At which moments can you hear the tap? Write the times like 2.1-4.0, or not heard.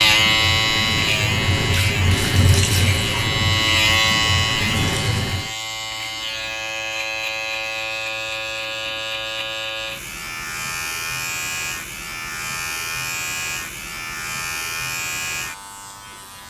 0.0-5.5.